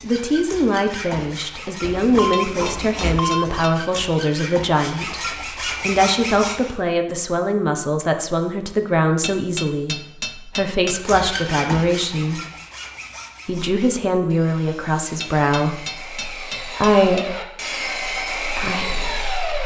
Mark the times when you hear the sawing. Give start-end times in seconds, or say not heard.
0.0-6.8, 10.9-19.6.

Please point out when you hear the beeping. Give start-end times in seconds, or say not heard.
1.8-3.6.